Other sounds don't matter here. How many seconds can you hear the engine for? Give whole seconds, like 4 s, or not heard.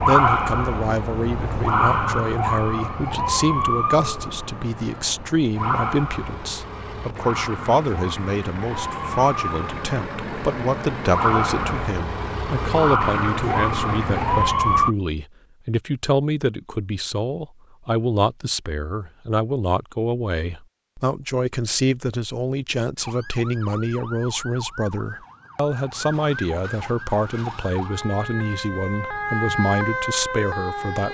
9 s.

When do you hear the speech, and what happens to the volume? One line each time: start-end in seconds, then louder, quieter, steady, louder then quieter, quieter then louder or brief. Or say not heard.
0.1-31.0 steady.